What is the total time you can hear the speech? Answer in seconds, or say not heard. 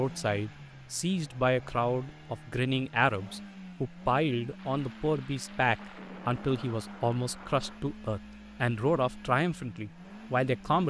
11 s.